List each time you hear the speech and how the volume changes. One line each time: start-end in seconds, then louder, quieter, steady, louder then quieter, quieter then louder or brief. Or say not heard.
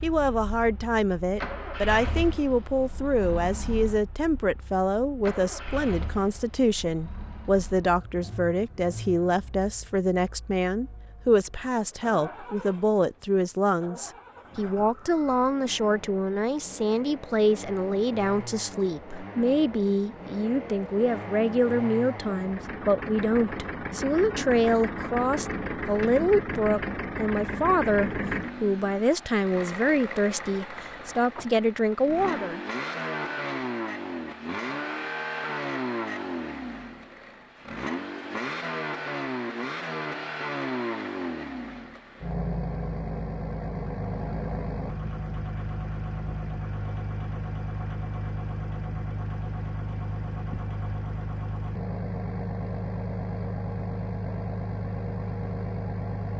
0.0-32.6 steady.